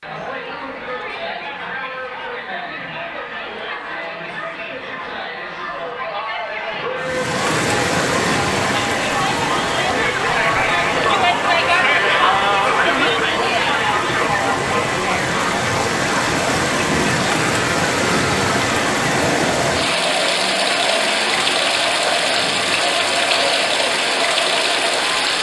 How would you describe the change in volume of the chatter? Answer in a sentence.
The volume of the chatter goes up, then down.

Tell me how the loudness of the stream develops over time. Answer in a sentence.
The loudness of the stream goes down, then up.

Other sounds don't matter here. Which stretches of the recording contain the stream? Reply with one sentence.
You can hear the stream from 7.0 to 25.3 s.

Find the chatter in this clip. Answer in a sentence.
The chatter can be heard from 0.0 to 25.3 s.